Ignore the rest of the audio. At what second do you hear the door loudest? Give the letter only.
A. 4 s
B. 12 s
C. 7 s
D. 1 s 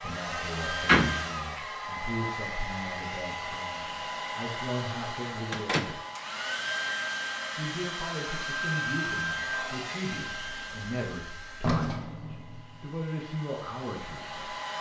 D.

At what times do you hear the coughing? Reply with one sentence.
The coughing can't be heard in this clip.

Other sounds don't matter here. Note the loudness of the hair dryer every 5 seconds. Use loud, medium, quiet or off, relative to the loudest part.
loud, loud, medium.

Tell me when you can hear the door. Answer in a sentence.
The door can be heard from 0.8 to 1.6 s, from 5.5 to 6.0 s and from 10.4 to 12.8 s.